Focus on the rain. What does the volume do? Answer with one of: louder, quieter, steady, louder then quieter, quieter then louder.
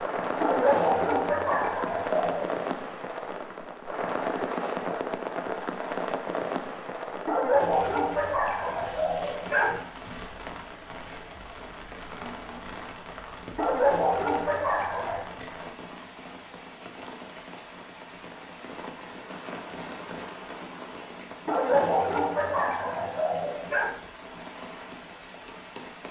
quieter.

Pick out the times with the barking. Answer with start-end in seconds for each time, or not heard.
0.4-2.5, 7.2-9.8, 13.6-15.2, 21.4-23.9.